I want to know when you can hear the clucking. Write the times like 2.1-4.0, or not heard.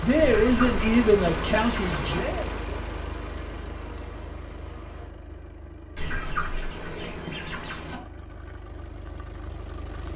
0.1-2.2, 6.0-8.0.